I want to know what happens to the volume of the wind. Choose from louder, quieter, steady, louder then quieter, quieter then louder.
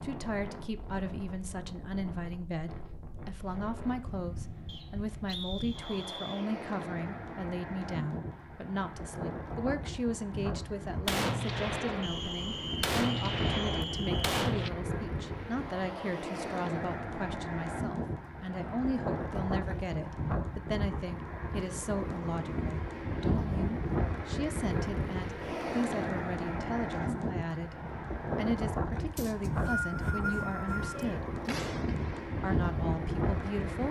louder.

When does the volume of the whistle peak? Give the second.
30 s.